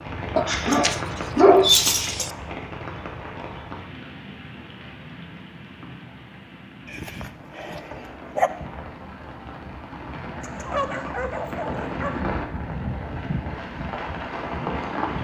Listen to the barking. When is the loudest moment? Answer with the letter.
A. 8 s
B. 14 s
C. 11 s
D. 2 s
D.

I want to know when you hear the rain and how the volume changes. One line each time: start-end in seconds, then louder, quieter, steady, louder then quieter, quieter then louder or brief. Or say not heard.
0.0-15.1 quieter then louder.